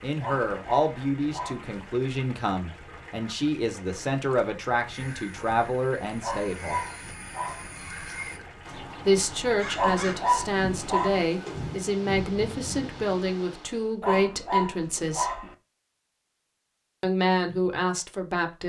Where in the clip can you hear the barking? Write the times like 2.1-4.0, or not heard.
0.2-1.8, 6.2-7.8, 9.8-11.3, 14.0-15.6.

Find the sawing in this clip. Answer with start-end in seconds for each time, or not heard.
not heard.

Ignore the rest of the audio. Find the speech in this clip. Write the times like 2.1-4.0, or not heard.
0.0-6.8, 9.0-15.4, 17.0-18.6.